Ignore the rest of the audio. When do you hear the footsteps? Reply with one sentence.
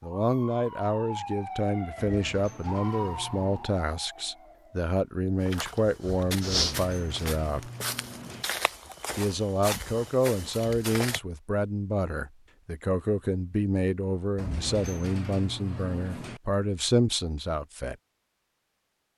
The footsteps can be heard from 5.4 to 11.2 s.